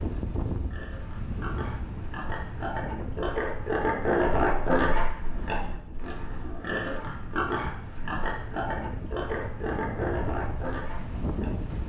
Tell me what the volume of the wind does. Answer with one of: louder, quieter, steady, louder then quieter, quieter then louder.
quieter then louder.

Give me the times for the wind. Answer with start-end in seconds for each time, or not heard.
0.0-11.8.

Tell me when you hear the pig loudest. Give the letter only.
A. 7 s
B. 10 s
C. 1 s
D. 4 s
D.